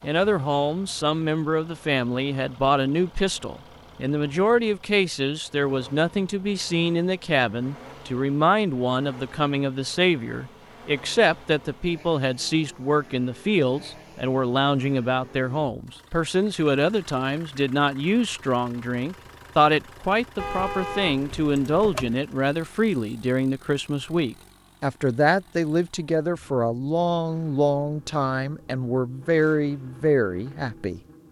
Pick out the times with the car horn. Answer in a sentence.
You can hear the car horn from 20.4 to 22.2 s.